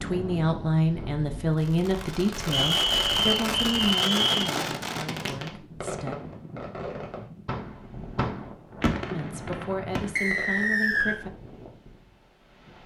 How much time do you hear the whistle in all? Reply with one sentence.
You can hear the whistle for 3 seconds altogether.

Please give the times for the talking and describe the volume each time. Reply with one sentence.
You can hear the talking from 0.0 to 6.2 s, getting quieter; and briefly from 9.1 to 11.3 s.